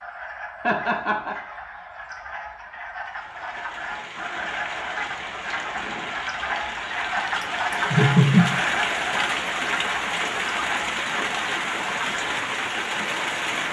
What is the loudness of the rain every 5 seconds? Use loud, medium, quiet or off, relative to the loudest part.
medium, loud, loud.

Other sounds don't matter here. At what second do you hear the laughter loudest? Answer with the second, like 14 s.
8 s.